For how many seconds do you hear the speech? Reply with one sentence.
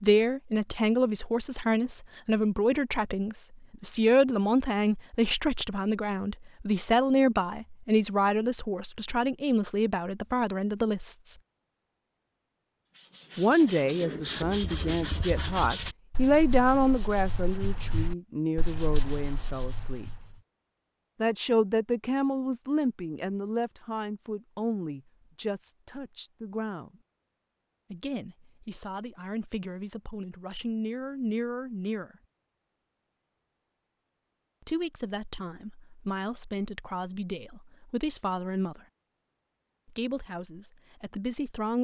You can hear the speech for 34 seconds altogether.